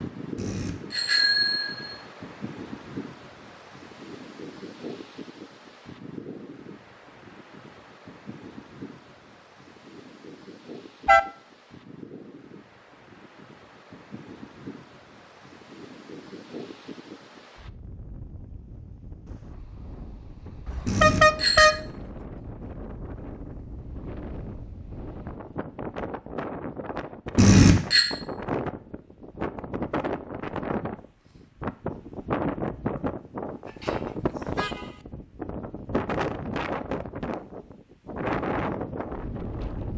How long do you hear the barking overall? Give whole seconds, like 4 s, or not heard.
not heard.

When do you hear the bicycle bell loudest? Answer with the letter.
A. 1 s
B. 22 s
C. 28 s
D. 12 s
C.